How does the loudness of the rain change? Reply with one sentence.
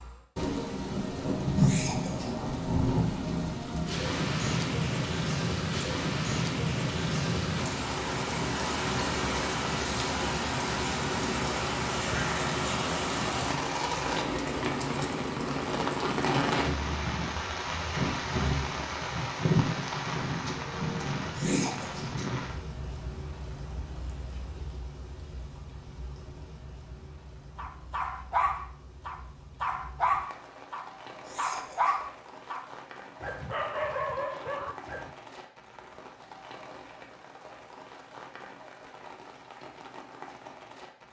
The loudness of the rain goes down.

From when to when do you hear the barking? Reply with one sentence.
The barking can be heard from 27.6 to 35.1 s.